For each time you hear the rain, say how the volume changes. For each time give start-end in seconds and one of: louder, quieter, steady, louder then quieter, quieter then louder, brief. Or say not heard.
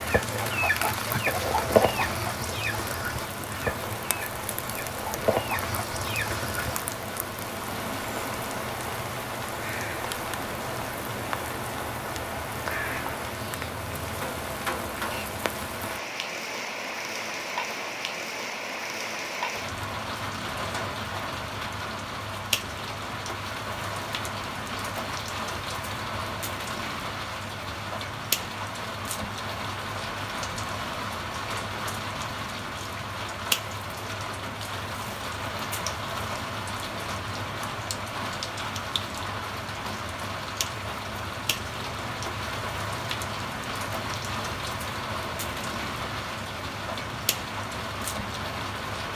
0.0-49.1 steady.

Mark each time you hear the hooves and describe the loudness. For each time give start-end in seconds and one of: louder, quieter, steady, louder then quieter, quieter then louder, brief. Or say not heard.
not heard.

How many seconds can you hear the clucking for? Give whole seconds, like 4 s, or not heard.
7 s.